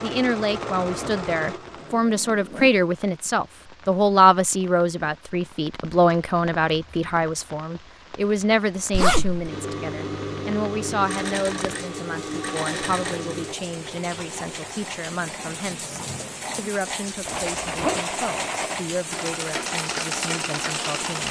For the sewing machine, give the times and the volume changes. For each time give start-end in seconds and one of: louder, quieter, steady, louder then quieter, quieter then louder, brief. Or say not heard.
0.0-1.9 brief
9.4-21.2 quieter then louder.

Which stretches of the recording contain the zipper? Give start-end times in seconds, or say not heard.
0.8-2.8, 8.9-9.5, 17.2-18.1.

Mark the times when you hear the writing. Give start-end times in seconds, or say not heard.
not heard.